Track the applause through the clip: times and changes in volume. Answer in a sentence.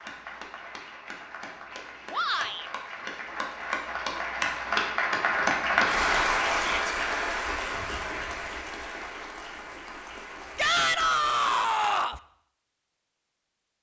You can hear the applause from 0.0 to 11.7 s, getting louder then quieter.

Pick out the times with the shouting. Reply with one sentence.
You can hear the shouting from 2.1 to 2.7 s, from 6.5 to 7.0 s and from 10.6 to 12.2 s.